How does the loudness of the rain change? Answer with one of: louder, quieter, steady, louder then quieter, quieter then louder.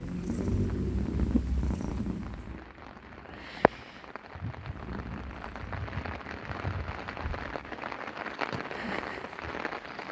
louder.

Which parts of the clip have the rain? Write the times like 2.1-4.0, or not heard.
0.0-10.0.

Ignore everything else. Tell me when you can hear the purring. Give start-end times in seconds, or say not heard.
0.0-10.0.